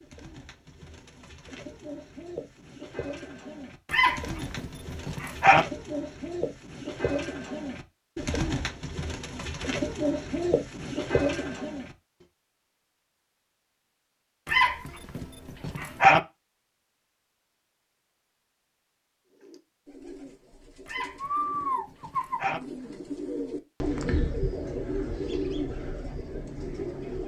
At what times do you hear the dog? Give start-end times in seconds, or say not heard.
3.9-5.7, 14.4-16.2, 20.9-22.6.